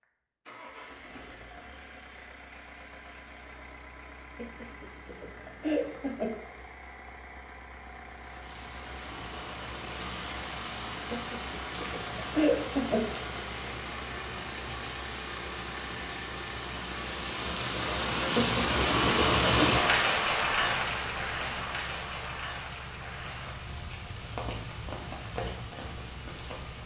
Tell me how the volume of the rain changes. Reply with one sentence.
The volume of the rain goes up, then down.